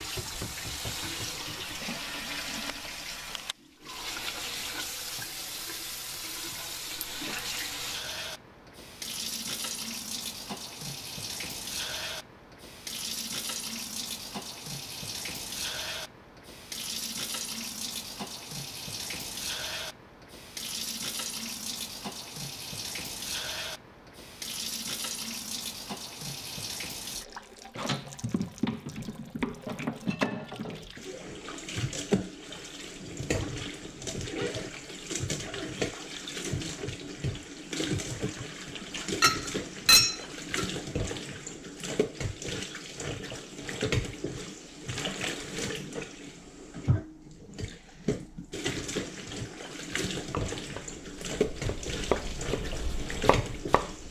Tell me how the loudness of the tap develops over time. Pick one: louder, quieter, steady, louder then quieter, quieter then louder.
steady.